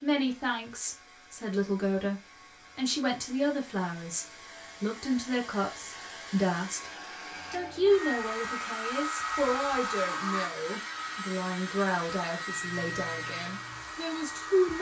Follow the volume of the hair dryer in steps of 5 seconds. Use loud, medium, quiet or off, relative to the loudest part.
quiet, loud, loud.